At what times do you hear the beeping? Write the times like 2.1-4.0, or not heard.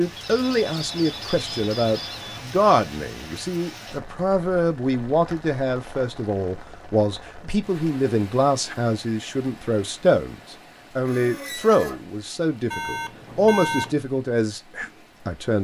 0.4-2.5, 12.7-13.9.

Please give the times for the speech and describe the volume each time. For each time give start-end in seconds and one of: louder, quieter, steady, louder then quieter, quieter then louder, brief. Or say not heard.
0.0-15.5 steady.